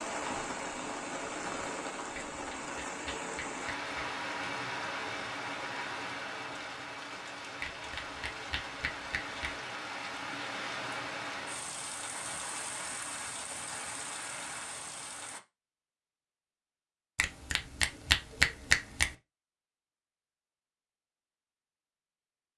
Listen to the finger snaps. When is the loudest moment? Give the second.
19 s.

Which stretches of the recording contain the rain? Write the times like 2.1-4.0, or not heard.
0.0-15.4.